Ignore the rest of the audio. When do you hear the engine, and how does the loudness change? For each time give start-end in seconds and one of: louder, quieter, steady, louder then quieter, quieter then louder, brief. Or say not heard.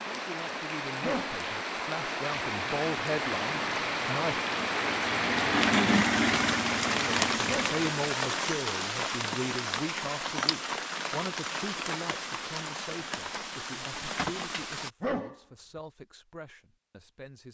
2.3-8.1 louder then quieter.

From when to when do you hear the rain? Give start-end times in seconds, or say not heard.
0.0-14.9.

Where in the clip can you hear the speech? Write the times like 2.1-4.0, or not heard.
0.0-4.4, 6.8-17.5.